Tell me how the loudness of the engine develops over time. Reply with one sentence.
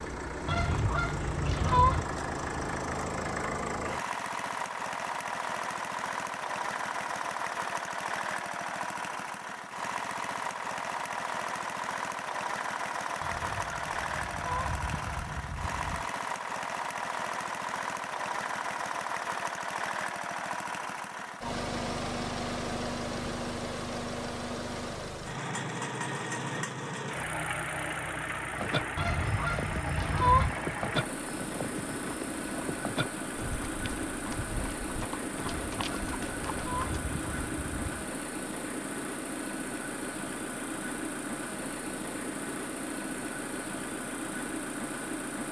The volume of the engine stays about the same.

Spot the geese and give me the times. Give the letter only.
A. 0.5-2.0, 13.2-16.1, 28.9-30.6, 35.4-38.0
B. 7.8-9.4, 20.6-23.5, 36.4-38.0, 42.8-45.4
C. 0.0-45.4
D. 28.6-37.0
A.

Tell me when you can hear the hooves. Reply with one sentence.
You can hear the hooves from 28.6 to 37.0 s.